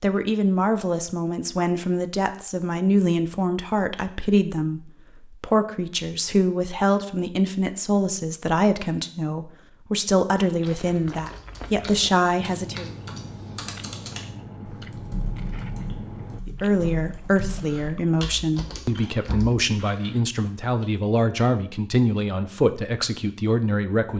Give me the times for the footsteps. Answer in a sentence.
The footsteps can't be heard in this clip.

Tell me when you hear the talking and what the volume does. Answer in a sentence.
The talking can be heard from 0.0 to 12.9 s, at a steady volume; and from 16.4 to 24.1 s, at a steady volume.